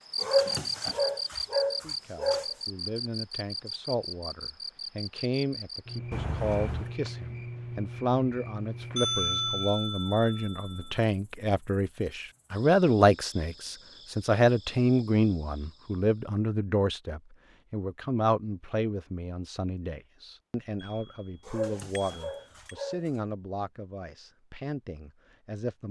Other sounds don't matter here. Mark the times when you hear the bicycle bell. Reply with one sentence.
The bicycle bell can be heard from 6.1 to 7.0 s, from 8.9 to 11.0 s and from 20.9 to 22.8 s.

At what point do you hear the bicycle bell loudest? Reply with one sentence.
The volume of the bicycle bell peaks at 9 seconds.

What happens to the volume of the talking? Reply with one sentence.
The volume of the talking goes up, then down.